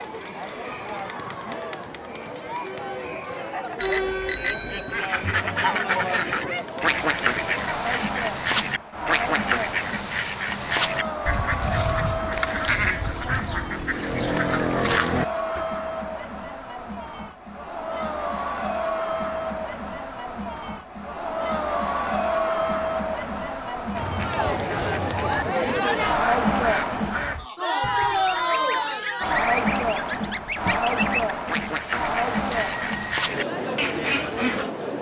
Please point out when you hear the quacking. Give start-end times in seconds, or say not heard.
4.9-15.7, 23.9-34.7.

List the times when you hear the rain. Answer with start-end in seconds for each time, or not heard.
not heard.